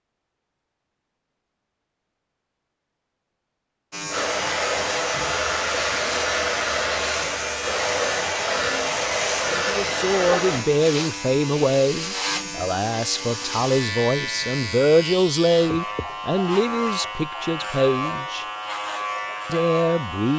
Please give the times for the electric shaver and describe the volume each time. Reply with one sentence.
You can hear the electric shaver from 3.9 to 20.3 s, at a steady volume.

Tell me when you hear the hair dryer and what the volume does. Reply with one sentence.
The hair dryer can be heard from 4.1 to 10.7 s, at a steady volume.